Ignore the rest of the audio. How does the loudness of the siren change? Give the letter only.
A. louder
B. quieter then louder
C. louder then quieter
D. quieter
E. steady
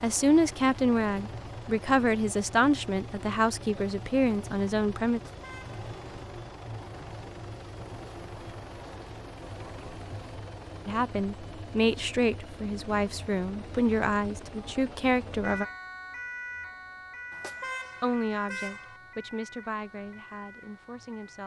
D.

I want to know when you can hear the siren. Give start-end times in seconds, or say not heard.
15.4-21.4.